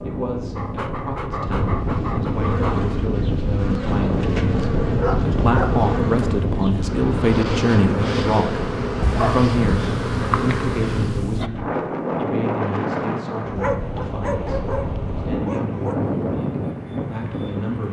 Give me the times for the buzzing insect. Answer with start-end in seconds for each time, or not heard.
2.2-11.2.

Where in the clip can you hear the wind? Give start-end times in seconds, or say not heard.
0.0-17.8.